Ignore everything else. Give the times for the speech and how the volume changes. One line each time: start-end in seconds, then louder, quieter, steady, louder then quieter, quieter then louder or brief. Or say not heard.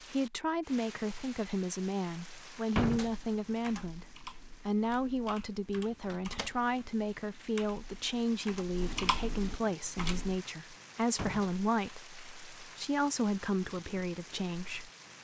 0.1-14.9 steady.